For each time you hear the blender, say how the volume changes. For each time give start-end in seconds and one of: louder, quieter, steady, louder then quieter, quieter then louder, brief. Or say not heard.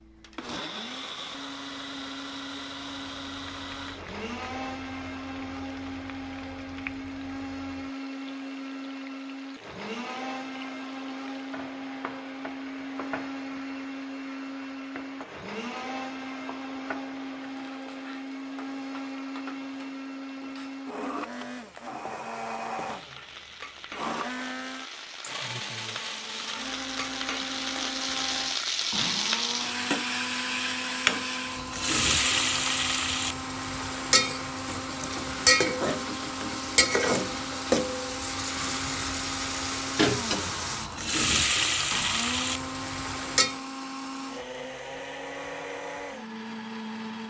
0.0-47.2 steady.